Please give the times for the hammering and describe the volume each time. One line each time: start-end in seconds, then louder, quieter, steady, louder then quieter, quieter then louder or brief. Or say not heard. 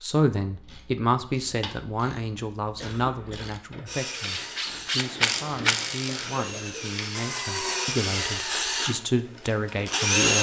not heard.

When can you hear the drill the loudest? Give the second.
10 s.